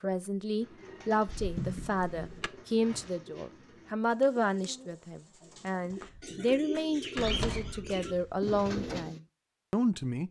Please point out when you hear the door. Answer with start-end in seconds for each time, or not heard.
1.2-2.5, 6.0-8.5.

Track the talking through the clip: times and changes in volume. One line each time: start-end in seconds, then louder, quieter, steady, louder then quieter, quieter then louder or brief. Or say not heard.
0.0-10.2 steady.